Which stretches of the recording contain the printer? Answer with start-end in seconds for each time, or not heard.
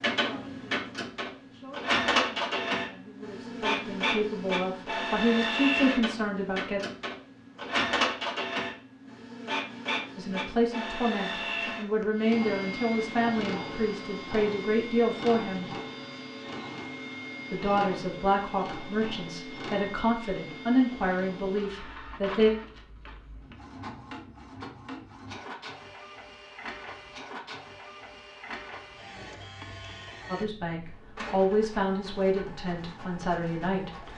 0.0-34.1.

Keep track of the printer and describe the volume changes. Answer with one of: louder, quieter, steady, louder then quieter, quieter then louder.
quieter.